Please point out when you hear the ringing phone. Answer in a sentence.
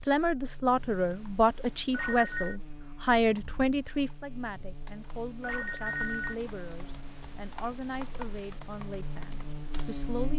The ringing phone can be heard from 1.9 to 2.5 s and from 5.4 to 6.3 s.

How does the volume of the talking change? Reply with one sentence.
The volume of the talking goes down.